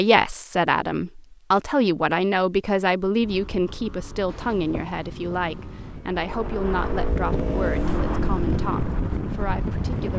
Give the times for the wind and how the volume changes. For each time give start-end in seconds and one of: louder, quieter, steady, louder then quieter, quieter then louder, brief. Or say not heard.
4.2-10.1 louder.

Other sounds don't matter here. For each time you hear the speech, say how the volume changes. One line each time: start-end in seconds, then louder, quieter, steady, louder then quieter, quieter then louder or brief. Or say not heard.
0.0-10.1 quieter.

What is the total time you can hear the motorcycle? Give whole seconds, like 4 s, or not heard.
7 s.